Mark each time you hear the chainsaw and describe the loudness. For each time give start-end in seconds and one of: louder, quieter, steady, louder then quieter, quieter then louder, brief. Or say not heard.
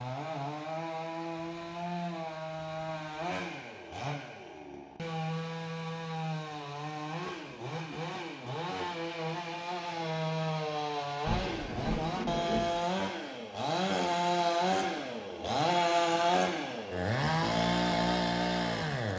0.0-19.1 louder.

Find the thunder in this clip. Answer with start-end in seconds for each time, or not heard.
11.2-12.8.